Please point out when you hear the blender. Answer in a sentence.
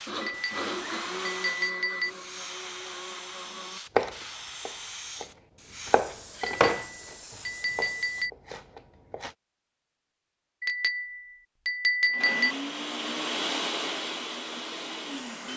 The blender can be heard from 0.0 to 3.8 s and from 12.1 to 15.5 s.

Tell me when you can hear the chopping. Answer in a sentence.
The chopping can be heard from 4.0 to 6.8 s and from 7.8 to 9.3 s.